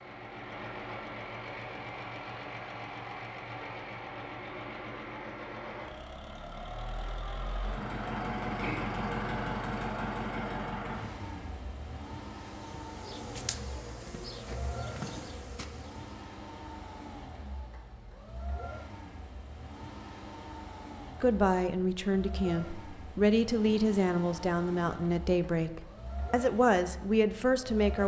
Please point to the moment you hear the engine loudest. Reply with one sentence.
The volume of the engine peaks at 9 seconds.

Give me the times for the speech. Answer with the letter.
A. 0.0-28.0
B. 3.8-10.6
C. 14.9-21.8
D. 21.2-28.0
D.